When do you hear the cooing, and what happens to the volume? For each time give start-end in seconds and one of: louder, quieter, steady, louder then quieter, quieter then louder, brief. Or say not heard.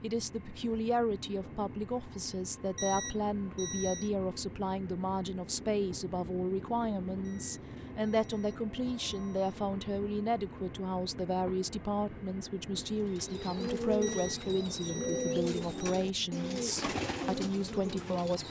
13.0-18.4 steady.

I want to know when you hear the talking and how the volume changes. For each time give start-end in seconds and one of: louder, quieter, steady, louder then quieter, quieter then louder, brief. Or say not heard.
0.0-18.4 steady.